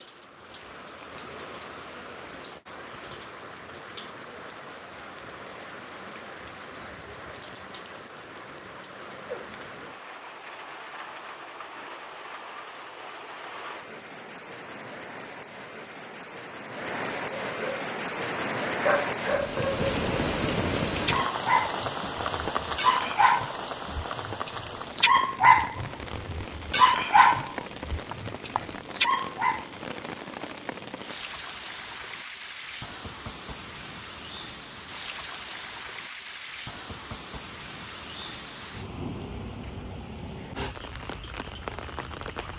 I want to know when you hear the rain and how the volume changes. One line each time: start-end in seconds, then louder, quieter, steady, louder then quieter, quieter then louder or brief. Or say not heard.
0.0-42.5 louder then quieter.